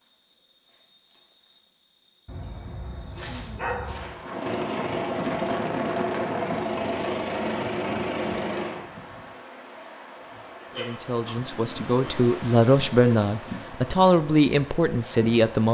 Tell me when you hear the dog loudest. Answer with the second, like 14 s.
4 s.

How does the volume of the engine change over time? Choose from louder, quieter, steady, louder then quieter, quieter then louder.
steady.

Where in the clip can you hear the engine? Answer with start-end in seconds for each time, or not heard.
4.2-8.8.